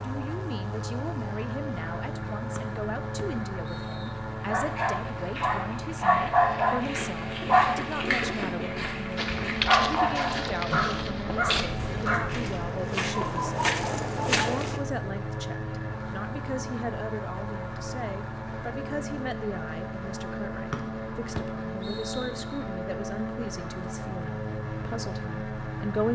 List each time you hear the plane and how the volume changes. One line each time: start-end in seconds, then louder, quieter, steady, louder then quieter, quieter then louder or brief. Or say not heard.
0.0-26.0 steady.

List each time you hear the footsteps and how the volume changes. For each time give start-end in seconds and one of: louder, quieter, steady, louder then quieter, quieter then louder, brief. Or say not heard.
9.2-14.8 quieter then louder.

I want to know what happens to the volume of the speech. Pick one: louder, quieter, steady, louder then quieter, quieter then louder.
steady.